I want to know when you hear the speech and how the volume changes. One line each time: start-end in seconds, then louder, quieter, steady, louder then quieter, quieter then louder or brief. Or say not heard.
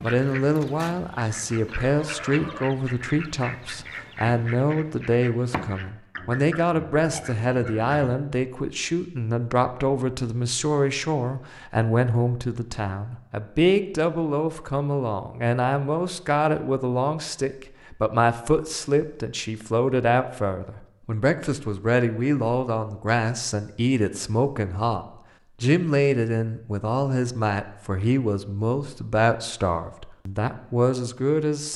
0.0-31.7 steady.